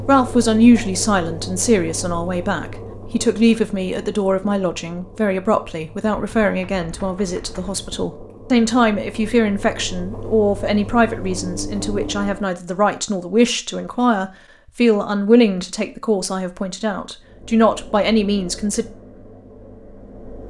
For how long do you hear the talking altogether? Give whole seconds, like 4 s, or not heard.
19 s.